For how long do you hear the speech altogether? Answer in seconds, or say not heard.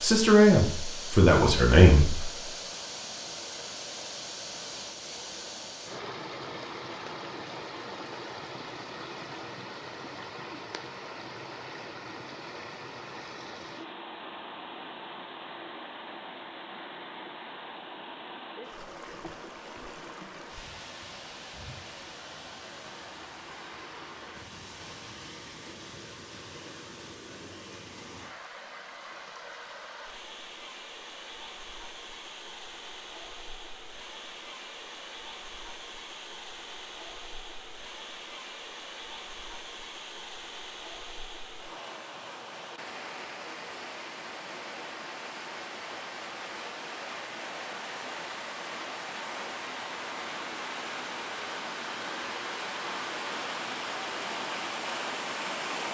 2 s.